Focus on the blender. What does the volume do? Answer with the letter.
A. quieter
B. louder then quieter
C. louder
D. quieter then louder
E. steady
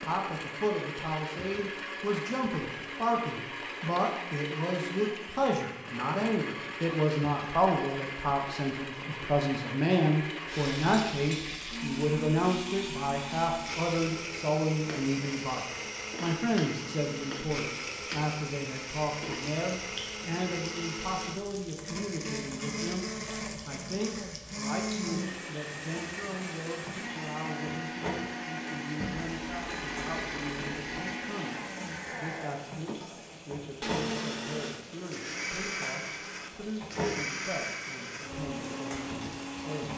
E.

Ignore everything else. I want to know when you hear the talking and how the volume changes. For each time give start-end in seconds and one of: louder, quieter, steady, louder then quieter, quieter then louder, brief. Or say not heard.
0.0-39.9 quieter.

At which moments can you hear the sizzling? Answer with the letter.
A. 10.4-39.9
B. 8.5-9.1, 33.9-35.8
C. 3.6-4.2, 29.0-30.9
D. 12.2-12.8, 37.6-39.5
A.